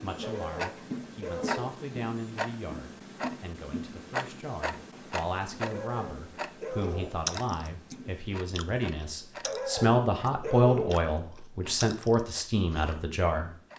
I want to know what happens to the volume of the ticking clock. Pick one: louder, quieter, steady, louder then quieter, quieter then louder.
quieter.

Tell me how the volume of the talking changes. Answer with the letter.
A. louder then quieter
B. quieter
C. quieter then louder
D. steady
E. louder
E.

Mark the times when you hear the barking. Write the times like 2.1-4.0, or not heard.
0.2-1.8, 5.6-7.3, 9.4-11.1.